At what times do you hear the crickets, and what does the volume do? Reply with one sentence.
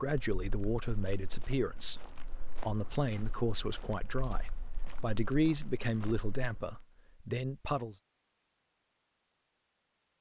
The crickets can't be heard in this clip.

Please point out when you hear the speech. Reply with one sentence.
You can hear the speech from 0.0 to 8.0 s.